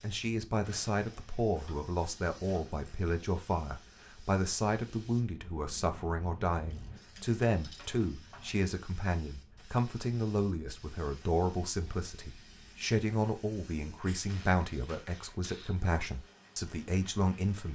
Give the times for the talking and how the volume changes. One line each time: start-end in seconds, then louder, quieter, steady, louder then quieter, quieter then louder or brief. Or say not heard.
0.0-17.6 steady.